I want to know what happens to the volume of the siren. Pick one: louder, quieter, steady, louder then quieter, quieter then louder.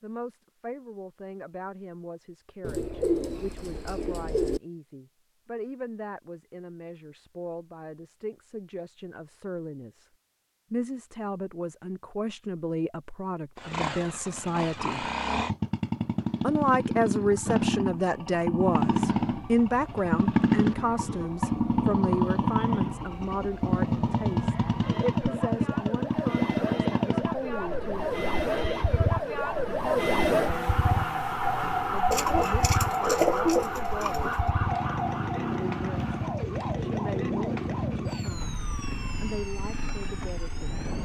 louder then quieter.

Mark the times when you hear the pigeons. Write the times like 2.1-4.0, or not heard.
2.6-4.6, 32.1-34.5.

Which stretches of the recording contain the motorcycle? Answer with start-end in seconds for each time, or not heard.
13.6-41.0.